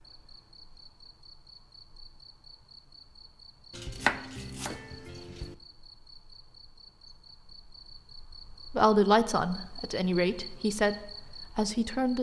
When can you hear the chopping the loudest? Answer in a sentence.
The volume of the chopping peaks at 4 seconds.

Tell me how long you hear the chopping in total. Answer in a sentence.
You can hear the chopping for 2 seconds altogether.